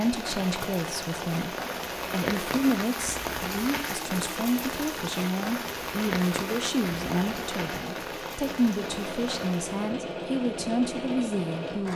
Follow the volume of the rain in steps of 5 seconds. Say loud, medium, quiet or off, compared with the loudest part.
loud, loud, off.